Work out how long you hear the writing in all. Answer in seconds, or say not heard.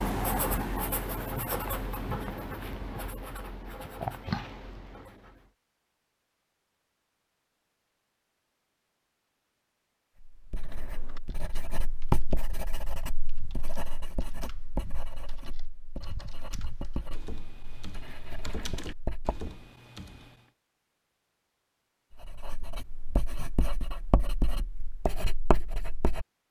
19 s.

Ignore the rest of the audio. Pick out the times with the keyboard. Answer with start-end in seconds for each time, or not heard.
10.6-20.4.